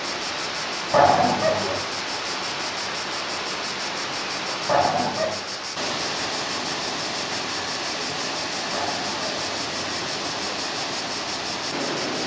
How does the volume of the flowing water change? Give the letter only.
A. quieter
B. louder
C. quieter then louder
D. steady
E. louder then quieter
D.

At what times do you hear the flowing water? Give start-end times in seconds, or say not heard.
0.0-12.2.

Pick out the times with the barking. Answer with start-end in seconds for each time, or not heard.
not heard.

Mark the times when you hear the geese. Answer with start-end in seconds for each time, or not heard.
not heard.